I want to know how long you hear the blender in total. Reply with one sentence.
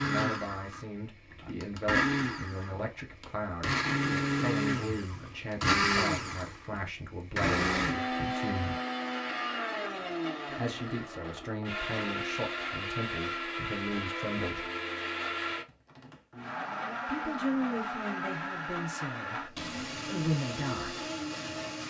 You can hear the blender for 22 seconds altogether.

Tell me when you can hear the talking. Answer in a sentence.
The talking can be heard from 0.0 to 8.8 s, from 10.5 to 14.7 s and from 17.1 to 21.1 s.